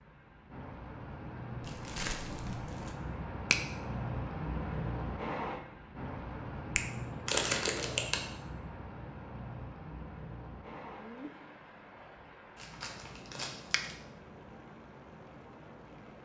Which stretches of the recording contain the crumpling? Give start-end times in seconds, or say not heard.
1.6-3.0, 7.2-8.2, 12.6-13.9.